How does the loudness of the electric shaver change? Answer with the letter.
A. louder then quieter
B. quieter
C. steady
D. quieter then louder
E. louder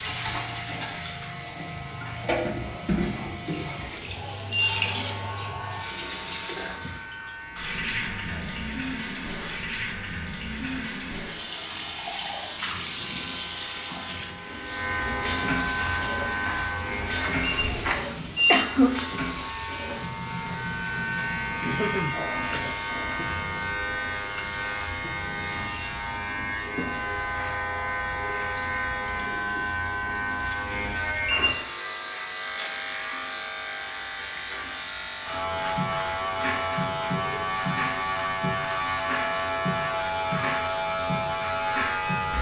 E.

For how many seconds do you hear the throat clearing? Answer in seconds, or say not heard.
2 s.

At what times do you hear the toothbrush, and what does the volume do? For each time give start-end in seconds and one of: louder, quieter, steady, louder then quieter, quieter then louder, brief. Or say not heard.
not heard.